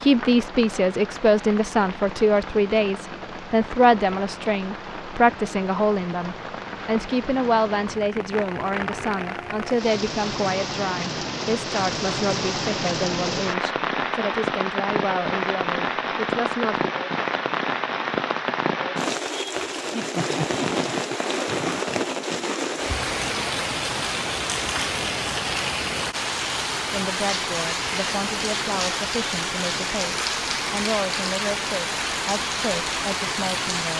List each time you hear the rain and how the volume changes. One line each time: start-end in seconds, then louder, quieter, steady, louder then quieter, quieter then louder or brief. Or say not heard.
0.0-33.9 louder.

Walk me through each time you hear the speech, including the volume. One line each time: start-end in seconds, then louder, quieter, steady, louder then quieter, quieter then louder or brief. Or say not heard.
0.0-16.9 quieter
26.9-33.9 steady.